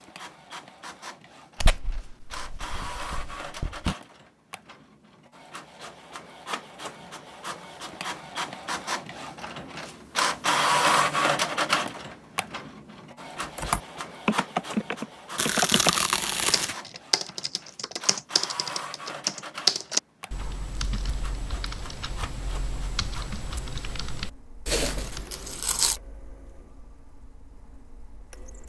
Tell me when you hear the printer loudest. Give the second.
11 s.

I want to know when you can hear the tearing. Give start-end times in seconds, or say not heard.
1.6-4.0, 15.3-16.8, 24.6-26.0.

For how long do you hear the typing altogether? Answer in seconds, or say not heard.
12 s.